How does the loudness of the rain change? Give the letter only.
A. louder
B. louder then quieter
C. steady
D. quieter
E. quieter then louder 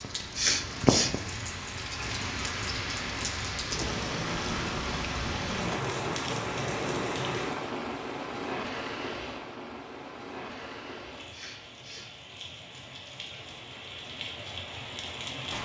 D.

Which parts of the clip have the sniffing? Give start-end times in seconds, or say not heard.
0.3-1.2, 11.3-12.2.